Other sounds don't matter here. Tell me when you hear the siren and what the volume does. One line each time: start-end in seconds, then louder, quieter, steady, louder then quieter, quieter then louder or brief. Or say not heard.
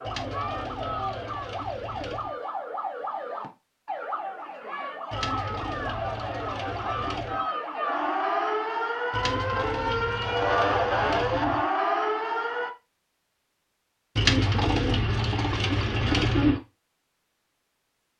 0.0-12.7 louder.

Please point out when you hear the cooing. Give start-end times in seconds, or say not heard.
0.0-2.4, 5.1-7.5, 9.1-11.7, 14.2-16.6.